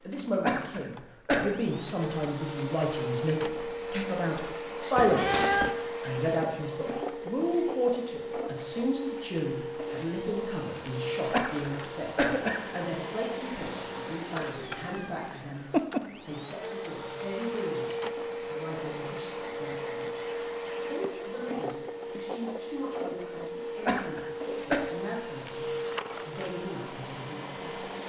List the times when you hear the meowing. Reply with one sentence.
You can hear the meowing from 5.0 to 5.8 s and from 14.6 to 16.0 s.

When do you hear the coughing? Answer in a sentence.
The coughing can be heard from 0.4 to 1.5 s, from 11.3 to 12.8 s and from 23.8 to 24.8 s.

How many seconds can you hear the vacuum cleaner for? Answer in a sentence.
The vacuum cleaner can be heard for 28 seconds in total.